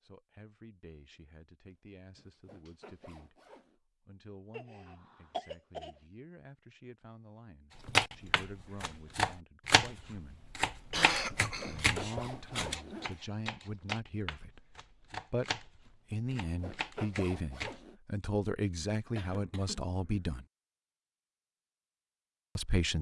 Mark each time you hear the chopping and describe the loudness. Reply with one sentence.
The chopping can be heard from 7.8 to 17.8 s, getting quieter.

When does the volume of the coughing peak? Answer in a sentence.
The loudest moment of the coughing is at 11 seconds.